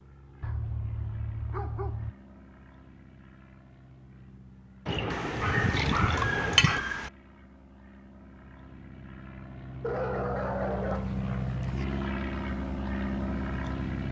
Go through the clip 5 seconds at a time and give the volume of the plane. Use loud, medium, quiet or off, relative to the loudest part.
quiet, quiet, loud.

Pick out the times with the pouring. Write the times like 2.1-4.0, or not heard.
4.8-6.8.